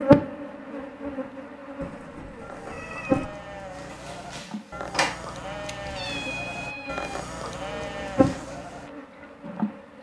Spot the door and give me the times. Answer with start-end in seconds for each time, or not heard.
3.9-5.2.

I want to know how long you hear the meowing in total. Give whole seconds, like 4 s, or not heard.
3 s.